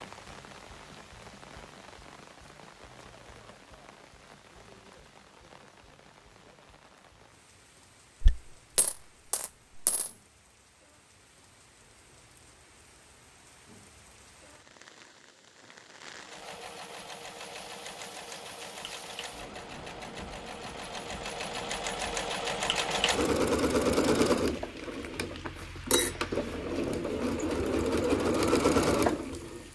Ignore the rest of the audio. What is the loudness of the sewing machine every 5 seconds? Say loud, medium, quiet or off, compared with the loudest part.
off, off, off, quiet, loud, loud.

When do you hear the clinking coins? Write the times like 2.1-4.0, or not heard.
8.2-10.1.